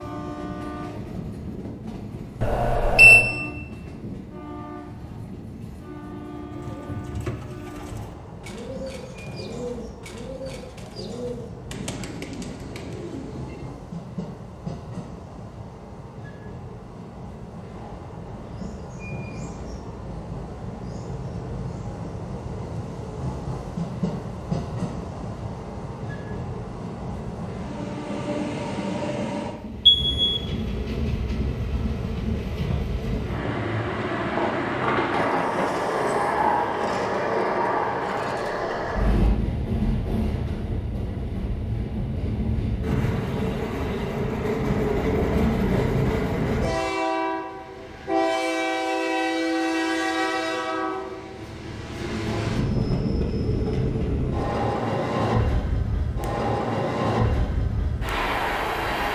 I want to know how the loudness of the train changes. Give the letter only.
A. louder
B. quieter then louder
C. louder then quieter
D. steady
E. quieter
A.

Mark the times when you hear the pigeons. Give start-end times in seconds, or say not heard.
6.5-13.7.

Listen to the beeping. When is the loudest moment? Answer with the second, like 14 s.
3 s.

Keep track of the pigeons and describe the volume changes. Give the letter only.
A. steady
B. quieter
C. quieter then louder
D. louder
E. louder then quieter
A.